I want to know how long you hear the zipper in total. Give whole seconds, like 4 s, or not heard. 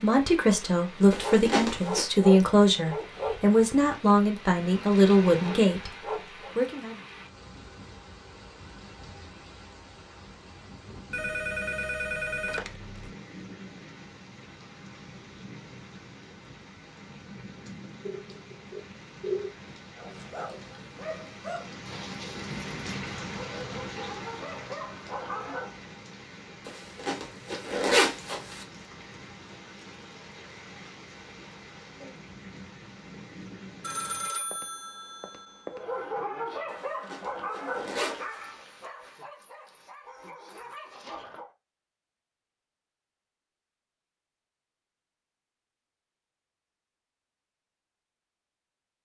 5 s.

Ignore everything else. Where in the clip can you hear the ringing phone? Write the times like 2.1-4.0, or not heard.
11.1-13.1, 18.1-19.6, 33.8-35.9.